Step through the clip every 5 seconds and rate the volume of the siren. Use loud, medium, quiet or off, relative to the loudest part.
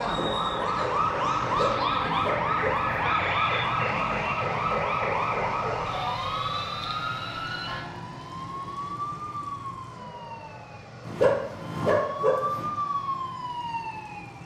loud, medium, medium.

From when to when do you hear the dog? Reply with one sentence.
The dog can be heard from 1.4 to 2.9 s and from 11.1 to 12.7 s.